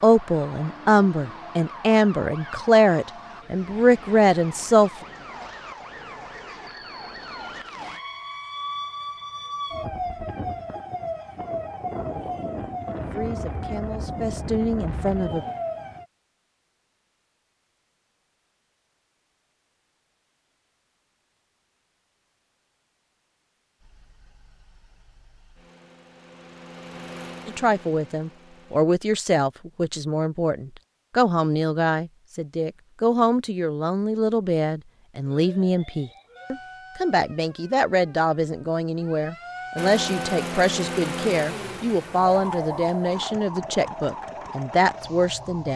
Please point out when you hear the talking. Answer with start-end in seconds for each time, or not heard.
0.0-4.9, 13.1-15.4, 27.4-45.7.